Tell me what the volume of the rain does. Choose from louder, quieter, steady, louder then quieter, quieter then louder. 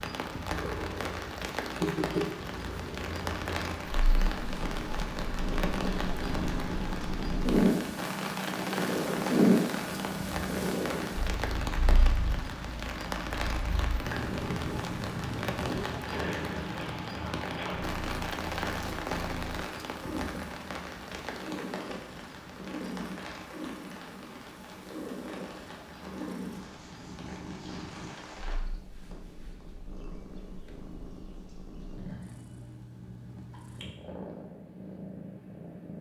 quieter.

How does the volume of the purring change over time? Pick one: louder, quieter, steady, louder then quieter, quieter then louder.
quieter.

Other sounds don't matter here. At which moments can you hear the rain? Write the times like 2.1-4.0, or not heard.
0.0-28.6.